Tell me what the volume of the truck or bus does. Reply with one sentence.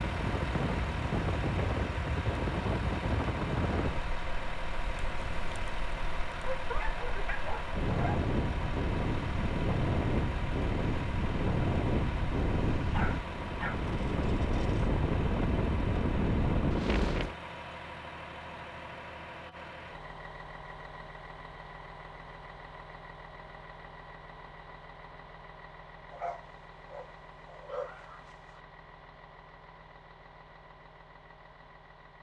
The volume of the truck or bus goes down.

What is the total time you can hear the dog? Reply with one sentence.
You can hear the dog for 5 seconds altogether.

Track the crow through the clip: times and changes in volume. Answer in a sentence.
You can't hear the crow here.